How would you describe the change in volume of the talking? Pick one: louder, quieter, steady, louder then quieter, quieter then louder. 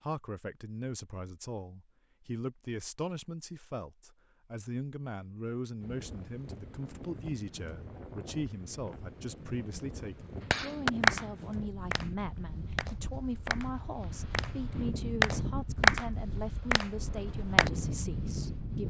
steady.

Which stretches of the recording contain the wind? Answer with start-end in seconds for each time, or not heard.
5.8-18.8.